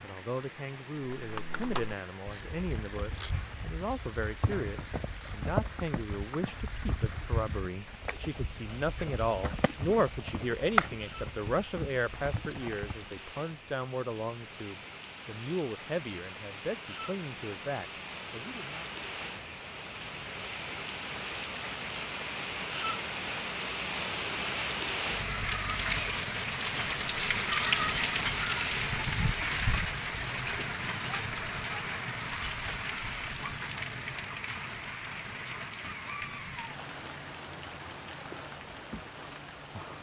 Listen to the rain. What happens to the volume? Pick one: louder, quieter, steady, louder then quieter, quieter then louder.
louder then quieter.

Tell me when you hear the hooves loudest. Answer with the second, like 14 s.
11 s.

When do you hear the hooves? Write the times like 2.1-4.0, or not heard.
1.0-13.2.